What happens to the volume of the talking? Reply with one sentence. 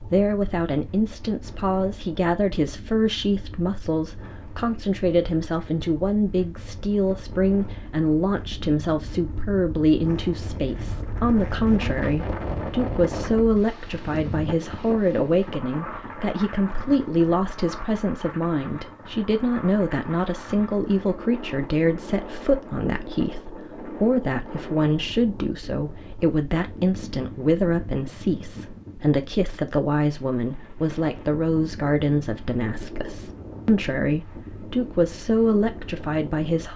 The volume of the talking stays about the same.